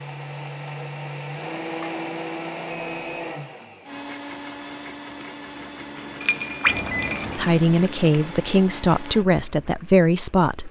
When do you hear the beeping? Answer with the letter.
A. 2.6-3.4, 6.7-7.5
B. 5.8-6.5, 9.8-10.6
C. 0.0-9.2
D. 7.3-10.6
A.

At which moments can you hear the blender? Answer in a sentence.
You can hear the blender from 0.0 to 9.2 s.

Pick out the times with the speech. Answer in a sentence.
You can hear the speech from 7.3 to 10.6 s.